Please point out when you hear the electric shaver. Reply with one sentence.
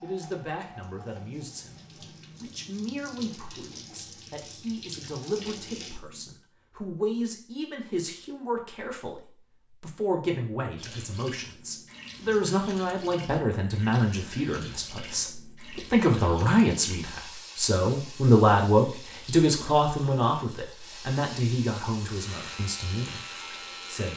The electric shaver can be heard from 22.1 to 24.1 s.